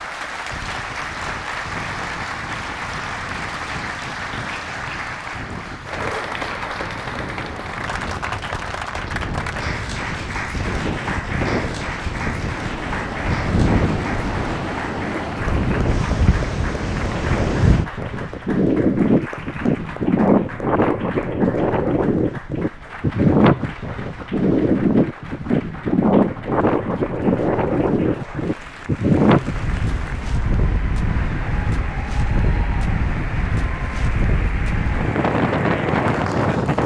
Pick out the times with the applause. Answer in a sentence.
You can hear the applause from 0.0 to 36.8 s.